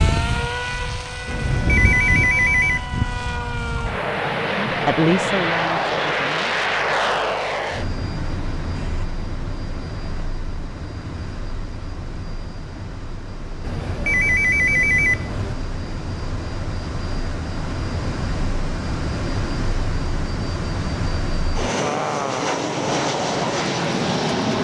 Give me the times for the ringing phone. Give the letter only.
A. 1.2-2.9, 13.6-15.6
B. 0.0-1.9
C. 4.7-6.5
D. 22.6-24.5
A.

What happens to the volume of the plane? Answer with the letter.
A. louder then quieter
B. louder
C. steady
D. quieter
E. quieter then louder
E.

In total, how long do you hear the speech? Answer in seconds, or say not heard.
2 s.